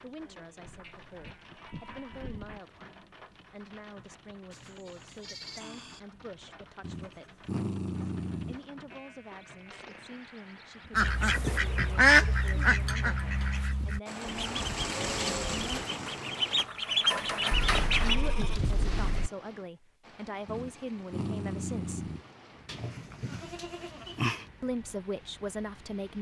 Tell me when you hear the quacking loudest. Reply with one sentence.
The loudest moment of the quacking is at 12 seconds.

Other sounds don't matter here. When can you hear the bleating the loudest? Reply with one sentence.
The volume of the bleating peaks at 24 seconds.